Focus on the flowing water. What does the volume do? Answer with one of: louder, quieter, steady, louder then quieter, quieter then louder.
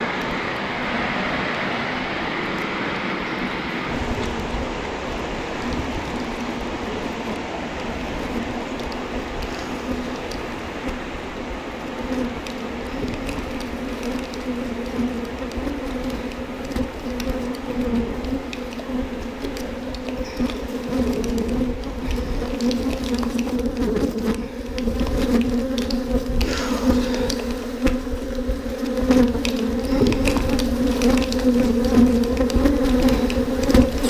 quieter.